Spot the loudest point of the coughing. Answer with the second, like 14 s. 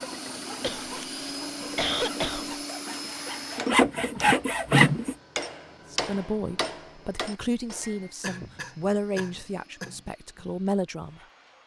2 s.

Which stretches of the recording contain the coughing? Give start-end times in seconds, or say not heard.
0.6-2.5, 8.2-10.0.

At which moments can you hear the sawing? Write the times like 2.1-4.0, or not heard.
0.0-5.2.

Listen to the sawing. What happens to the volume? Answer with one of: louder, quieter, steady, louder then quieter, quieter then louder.
louder.